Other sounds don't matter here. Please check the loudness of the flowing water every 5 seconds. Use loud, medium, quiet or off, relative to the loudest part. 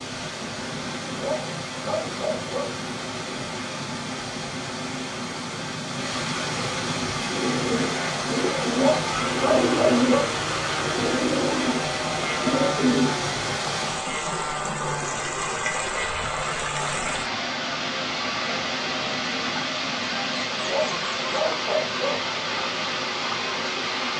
medium, loud, loud, loud, loud.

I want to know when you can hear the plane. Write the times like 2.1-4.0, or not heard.
0.0-19.6.